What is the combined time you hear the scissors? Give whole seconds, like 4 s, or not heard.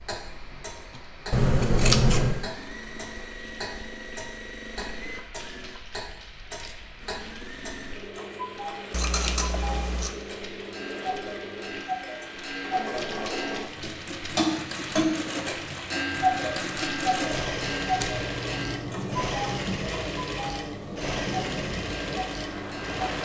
4 s.